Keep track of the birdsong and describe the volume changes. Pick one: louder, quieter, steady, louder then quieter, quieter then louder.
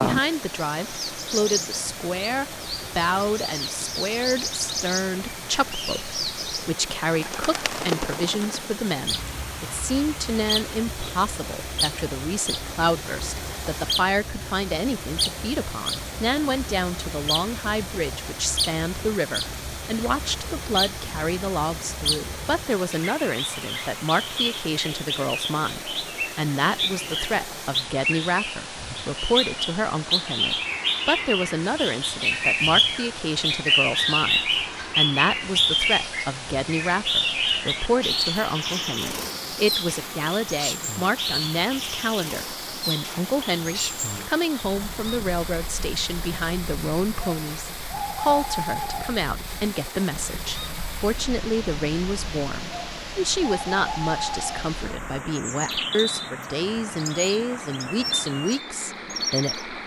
louder then quieter.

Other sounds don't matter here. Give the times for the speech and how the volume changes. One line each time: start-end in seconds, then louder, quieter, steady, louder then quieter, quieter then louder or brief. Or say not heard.
0.0-59.7 steady.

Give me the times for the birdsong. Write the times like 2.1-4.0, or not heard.
0.0-59.6.